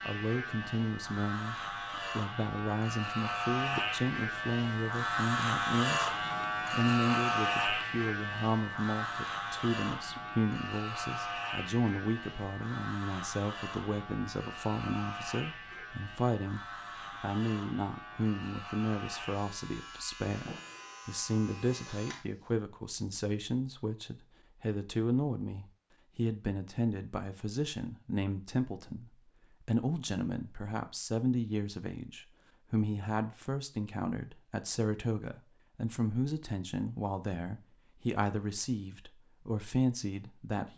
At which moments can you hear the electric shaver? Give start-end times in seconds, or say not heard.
0.0-22.5.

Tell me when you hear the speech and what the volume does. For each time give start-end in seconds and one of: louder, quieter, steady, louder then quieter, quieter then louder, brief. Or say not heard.
0.1-40.7 steady.